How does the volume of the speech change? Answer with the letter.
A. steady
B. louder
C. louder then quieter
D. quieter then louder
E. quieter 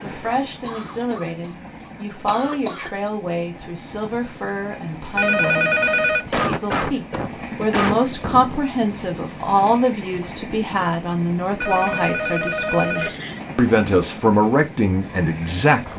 B.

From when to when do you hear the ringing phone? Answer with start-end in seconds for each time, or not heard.
5.2-6.2, 11.6-13.1.